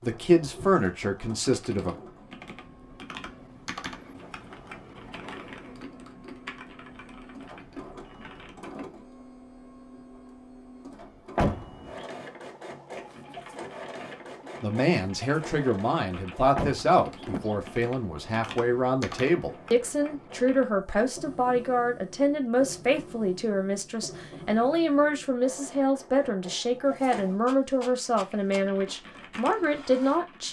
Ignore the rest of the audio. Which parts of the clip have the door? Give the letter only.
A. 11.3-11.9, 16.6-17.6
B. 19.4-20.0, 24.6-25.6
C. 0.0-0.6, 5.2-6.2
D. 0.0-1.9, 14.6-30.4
A.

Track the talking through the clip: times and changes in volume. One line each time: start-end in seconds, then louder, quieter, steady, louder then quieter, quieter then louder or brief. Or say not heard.
0.0-1.9 brief
14.6-30.4 steady.